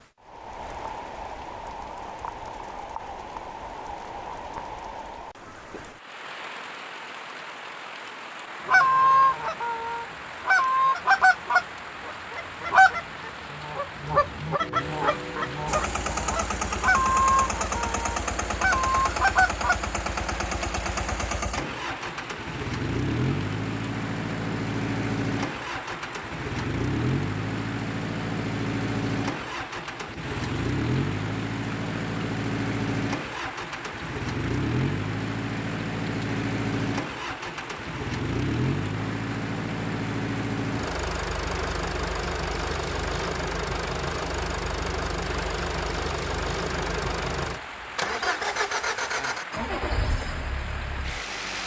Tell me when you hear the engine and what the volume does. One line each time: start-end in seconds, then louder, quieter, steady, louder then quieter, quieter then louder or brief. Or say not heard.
15.7-51.6 steady.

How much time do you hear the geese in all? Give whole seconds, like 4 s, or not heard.
11 s.